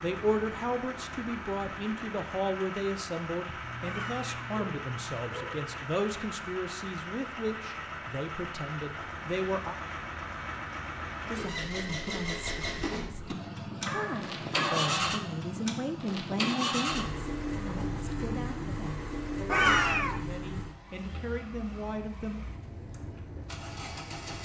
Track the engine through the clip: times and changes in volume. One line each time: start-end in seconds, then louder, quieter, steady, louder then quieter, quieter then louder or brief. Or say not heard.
0.0-24.4 louder then quieter.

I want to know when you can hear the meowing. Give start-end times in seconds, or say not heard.
3.8-4.4, 19.4-20.2.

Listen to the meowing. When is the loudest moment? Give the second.
20 s.